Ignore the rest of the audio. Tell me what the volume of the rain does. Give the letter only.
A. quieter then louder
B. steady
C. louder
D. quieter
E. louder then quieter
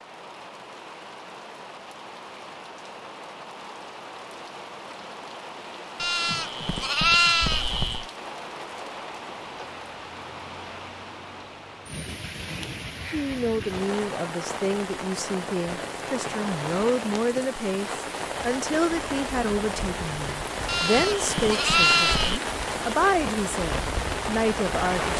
C.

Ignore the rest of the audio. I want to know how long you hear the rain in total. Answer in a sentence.
You can hear the rain for 25 seconds altogether.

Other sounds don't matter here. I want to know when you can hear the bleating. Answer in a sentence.
You can hear the bleating from 6.0 to 8.1 s and from 20.6 to 22.4 s.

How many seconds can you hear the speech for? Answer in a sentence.
You can hear the speech for 12 seconds altogether.